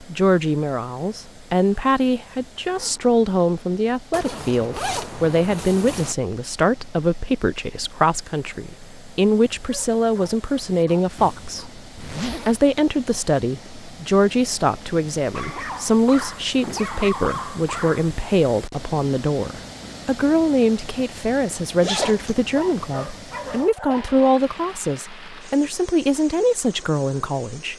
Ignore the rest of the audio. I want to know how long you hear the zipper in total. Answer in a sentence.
You can hear the zipper for 4 seconds altogether.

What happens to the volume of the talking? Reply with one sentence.
The volume of the talking stays about the same.